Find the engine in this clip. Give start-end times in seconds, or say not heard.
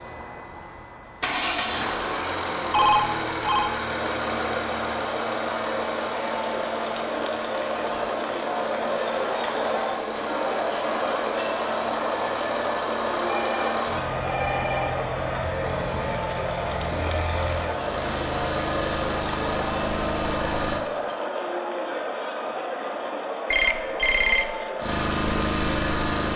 0.0-20.9, 24.8-26.3.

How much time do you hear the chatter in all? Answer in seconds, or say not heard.
22 s.